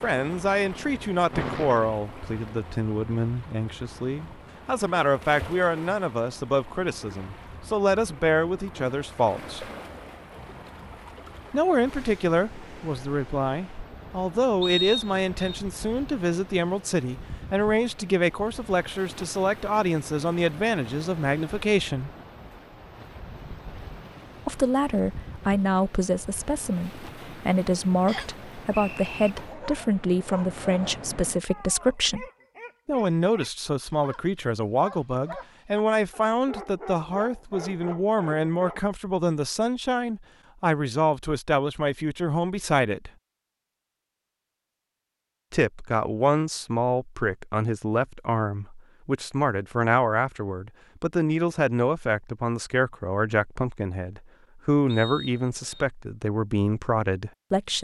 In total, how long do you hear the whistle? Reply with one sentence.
The whistle can be heard for 3 seconds in total.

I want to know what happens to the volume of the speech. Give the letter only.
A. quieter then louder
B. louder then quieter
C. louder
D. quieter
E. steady
E.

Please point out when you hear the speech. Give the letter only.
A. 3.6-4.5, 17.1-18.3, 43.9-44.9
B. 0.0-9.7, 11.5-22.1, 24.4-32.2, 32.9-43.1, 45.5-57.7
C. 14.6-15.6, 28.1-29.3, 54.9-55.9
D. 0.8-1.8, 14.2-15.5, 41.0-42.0
B.